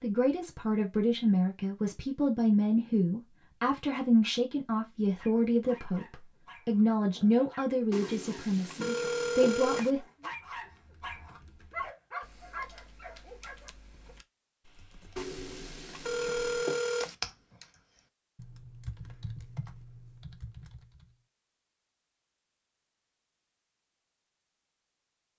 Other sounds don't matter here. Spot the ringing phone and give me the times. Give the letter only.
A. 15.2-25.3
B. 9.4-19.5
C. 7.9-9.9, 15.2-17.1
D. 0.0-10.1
C.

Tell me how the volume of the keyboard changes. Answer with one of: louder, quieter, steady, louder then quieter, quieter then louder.
louder then quieter.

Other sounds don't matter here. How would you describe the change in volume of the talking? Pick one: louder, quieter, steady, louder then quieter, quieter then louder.
steady.